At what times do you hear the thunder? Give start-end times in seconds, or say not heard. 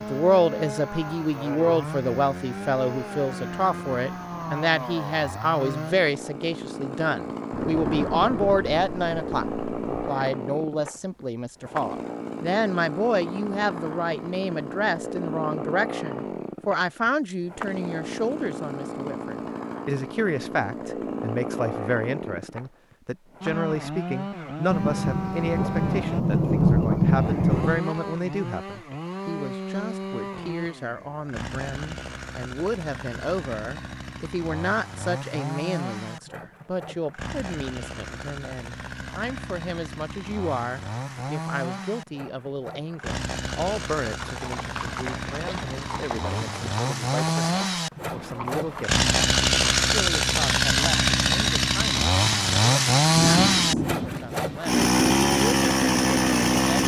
7.5-10.1, 24.7-27.9, 53.0-54.6.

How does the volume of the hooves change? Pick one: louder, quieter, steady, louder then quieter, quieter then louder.
steady.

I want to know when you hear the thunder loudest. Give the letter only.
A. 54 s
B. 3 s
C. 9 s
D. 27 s
D.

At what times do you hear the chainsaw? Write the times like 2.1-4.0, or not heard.
0.0-56.8.